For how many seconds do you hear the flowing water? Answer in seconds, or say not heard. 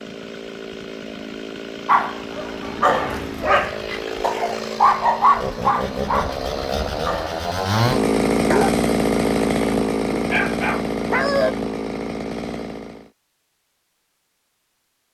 not heard.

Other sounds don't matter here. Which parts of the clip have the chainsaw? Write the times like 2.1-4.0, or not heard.
0.0-13.1.